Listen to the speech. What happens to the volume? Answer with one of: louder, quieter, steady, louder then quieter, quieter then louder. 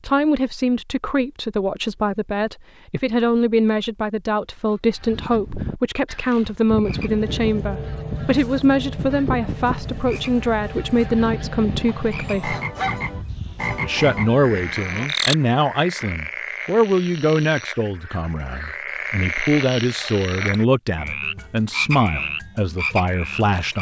steady.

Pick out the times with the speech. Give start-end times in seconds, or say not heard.
0.1-12.6, 13.8-23.7.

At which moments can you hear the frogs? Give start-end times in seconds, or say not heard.
6.8-23.7.